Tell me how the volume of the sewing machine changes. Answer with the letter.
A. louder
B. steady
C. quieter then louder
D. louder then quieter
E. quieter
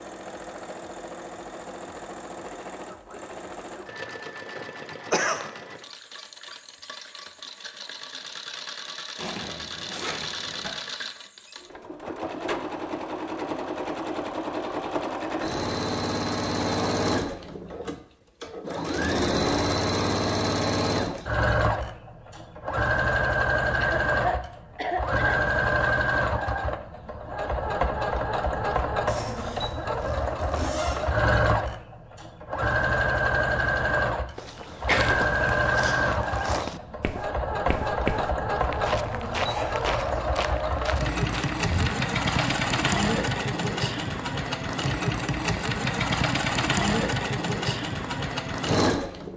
A.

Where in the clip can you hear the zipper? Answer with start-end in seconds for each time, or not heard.
9.2-10.7, 29.1-31.1, 39.0-39.9.